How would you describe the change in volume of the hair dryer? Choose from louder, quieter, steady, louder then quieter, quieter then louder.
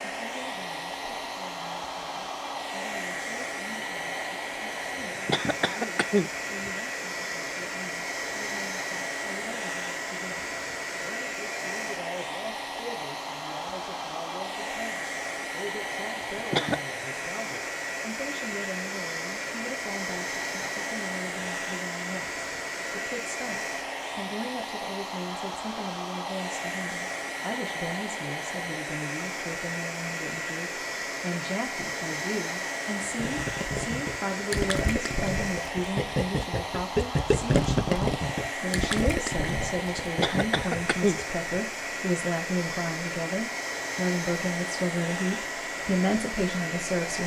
steady.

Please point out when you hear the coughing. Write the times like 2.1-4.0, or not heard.
5.2-6.7, 16.2-16.8, 40.1-41.6.